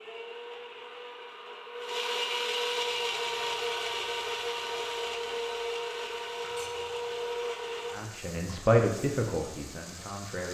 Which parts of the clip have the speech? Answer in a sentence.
The speech can be heard from 7.9 to 10.4 s.